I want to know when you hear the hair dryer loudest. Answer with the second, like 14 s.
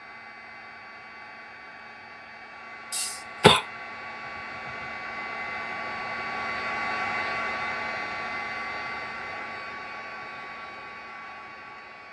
7 s.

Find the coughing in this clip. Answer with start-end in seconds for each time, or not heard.
2.9-3.6.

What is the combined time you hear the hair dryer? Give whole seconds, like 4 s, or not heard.
12 s.